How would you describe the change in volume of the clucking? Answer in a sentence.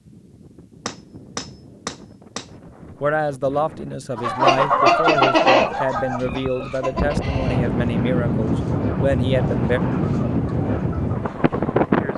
The loudness of the clucking goes down.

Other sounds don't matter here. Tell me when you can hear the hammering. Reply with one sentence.
You can hear the hammering from 0.8 to 2.5 s.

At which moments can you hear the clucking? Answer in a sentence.
You can hear the clucking from 4.2 to 11.8 s.